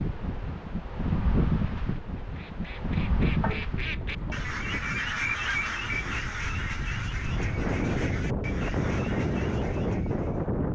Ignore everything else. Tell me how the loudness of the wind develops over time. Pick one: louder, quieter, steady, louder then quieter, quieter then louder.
quieter then louder.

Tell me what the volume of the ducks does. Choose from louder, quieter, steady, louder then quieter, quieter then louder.
louder then quieter.